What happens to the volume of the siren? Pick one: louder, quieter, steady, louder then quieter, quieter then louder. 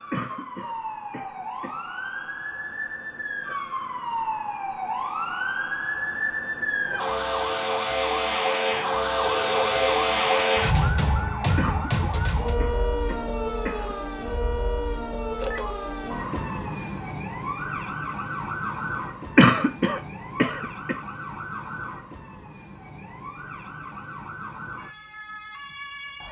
louder then quieter.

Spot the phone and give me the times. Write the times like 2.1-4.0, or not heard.
9.2-10.3, 15.3-15.8.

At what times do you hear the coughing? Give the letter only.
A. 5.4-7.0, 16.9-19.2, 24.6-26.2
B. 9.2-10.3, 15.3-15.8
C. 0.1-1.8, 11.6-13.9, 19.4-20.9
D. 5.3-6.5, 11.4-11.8
C.